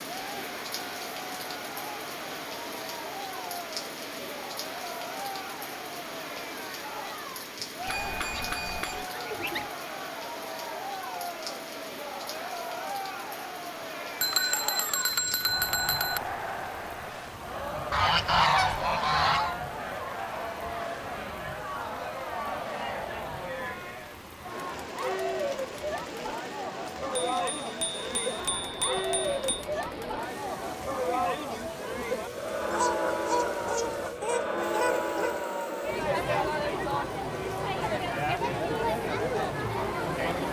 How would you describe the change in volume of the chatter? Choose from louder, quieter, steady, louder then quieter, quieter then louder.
louder.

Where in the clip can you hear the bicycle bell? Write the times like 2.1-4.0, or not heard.
7.8-9.1, 14.2-16.2, 27.2-29.6.